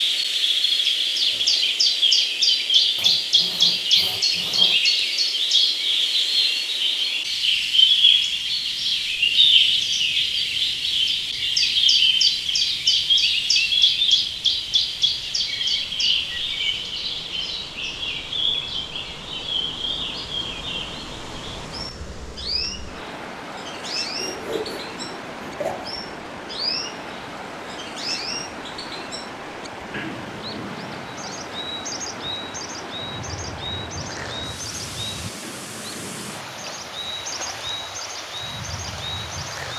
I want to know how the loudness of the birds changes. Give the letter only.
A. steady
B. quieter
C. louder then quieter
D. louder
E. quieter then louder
B.